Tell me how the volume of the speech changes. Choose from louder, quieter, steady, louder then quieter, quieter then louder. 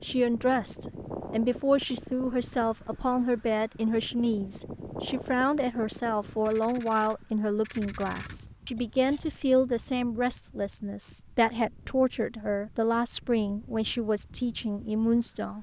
steady.